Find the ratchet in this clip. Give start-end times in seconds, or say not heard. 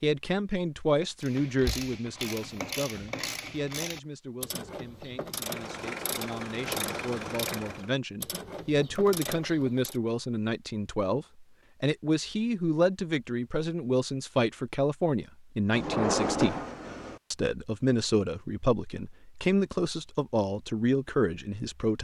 1.2-10.0.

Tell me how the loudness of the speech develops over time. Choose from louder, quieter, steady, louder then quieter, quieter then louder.
quieter then louder.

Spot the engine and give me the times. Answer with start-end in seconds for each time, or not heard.
5.3-8.0.